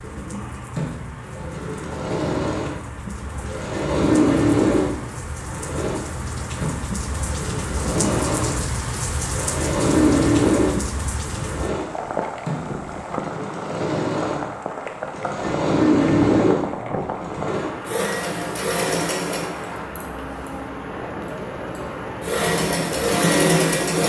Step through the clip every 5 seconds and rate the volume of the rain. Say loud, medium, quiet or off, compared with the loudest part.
medium, loud, loud, loud, loud.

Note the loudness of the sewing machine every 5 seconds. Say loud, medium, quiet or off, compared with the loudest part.
loud, medium, loud, loud, loud.